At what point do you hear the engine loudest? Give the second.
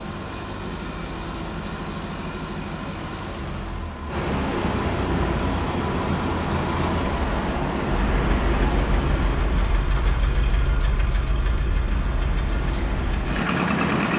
14 s.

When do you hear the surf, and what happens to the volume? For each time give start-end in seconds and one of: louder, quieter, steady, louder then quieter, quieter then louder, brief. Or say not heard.
4.0-14.1 quieter then louder.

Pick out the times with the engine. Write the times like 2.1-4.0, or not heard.
0.0-14.1.